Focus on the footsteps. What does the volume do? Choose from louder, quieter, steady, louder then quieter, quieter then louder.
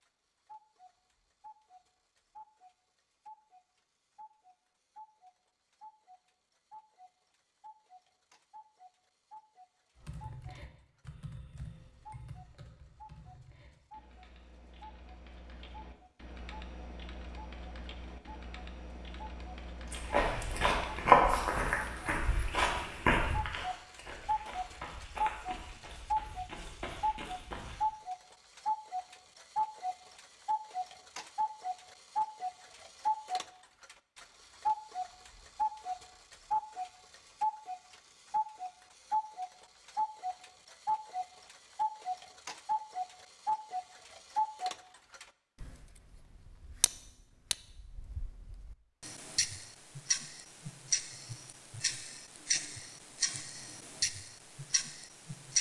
quieter.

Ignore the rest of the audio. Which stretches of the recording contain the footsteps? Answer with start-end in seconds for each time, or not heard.
19.9-27.8.